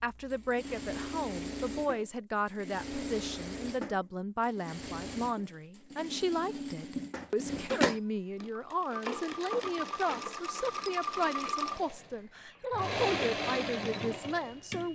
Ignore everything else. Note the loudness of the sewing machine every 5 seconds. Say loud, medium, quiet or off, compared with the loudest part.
medium, loud, loud.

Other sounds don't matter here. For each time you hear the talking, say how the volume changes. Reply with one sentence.
The talking can be heard from 0.0 to 14.9 s, at a steady volume.